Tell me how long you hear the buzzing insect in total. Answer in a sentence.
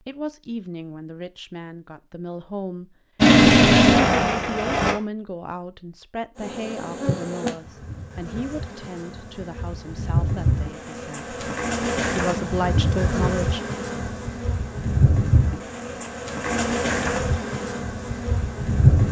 The buzzing insect can be heard for 13 seconds in total.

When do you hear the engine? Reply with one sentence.
The engine can be heard from 3.1 to 5.0 s.